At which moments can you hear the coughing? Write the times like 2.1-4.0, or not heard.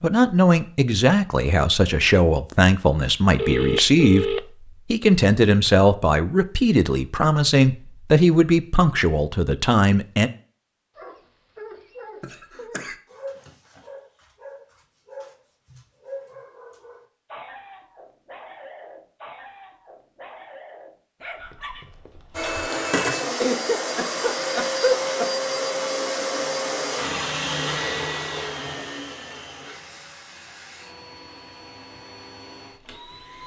12.2-12.9, 23.4-25.4.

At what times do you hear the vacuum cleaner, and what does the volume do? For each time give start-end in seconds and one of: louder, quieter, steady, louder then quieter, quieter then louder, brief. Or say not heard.
22.3-33.4 quieter.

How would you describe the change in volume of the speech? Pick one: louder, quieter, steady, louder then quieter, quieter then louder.
steady.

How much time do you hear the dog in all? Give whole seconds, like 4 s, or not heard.
12 s.